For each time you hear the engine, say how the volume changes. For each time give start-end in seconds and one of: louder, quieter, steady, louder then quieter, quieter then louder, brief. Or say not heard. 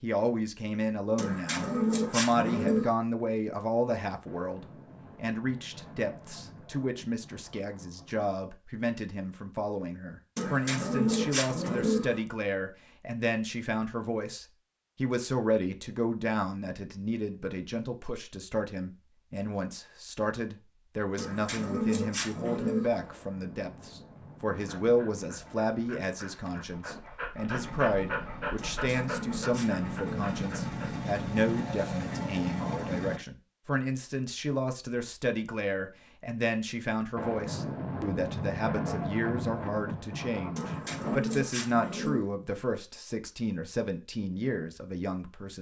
27.5-33.2 louder.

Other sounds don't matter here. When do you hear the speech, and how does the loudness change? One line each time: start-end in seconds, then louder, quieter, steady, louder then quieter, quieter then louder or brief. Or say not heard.
0.0-45.5 steady.